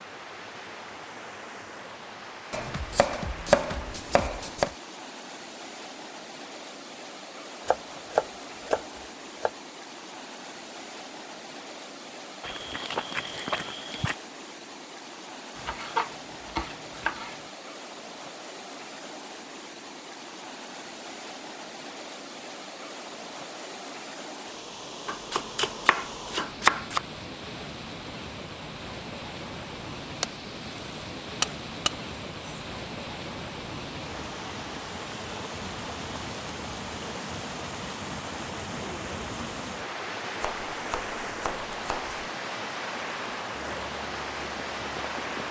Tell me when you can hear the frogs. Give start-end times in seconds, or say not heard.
not heard.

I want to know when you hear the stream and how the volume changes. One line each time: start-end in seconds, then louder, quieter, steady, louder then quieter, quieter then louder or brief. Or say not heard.
0.0-45.4 louder.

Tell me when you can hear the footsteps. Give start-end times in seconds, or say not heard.
12.4-14.2, 43.5-45.4.